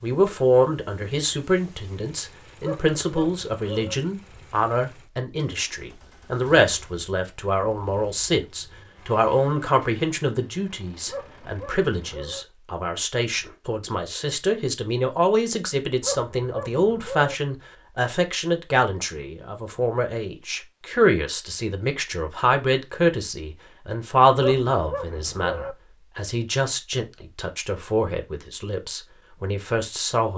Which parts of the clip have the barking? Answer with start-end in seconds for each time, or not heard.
2.6-4.0, 11.1-12.4, 16.0-17.4, 24.4-25.8.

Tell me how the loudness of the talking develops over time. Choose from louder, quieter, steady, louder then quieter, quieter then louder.
steady.